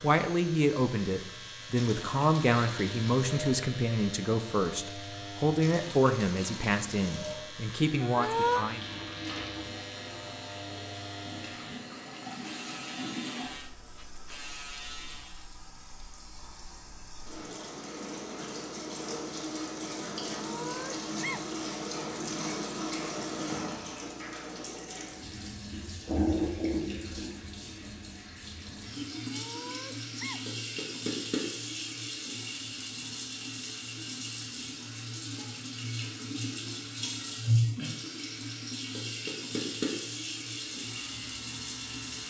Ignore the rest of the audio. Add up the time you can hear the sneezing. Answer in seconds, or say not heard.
3 s.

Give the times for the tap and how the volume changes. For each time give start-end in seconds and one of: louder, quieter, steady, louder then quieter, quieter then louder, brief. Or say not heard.
0.0-42.2 louder.